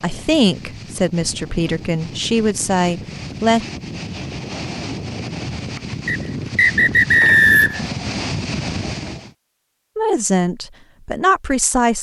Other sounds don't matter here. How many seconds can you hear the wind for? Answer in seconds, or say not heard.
9 s.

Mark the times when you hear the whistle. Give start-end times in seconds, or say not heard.
6.0-7.8.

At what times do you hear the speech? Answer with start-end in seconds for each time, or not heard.
0.0-3.6, 9.9-11.9.